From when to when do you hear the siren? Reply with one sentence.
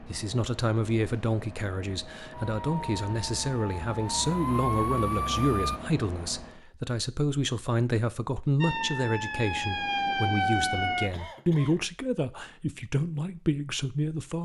The siren can be heard from 2.4 to 5.8 s and from 8.6 to 11.1 s.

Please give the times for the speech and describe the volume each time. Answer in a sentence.
You can hear the speech from 0.0 to 14.3 s, at a steady volume.